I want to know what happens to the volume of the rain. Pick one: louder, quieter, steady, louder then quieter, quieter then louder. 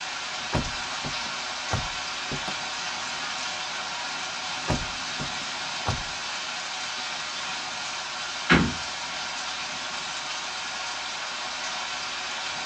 steady.